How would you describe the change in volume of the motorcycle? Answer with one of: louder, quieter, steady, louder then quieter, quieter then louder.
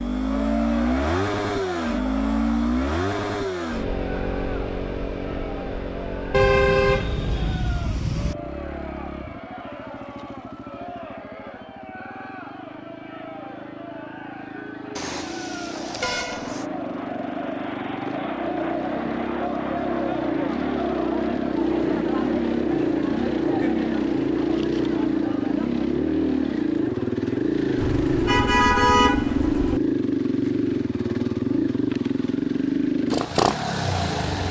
quieter then louder.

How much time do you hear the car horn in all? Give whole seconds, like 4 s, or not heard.
6 s.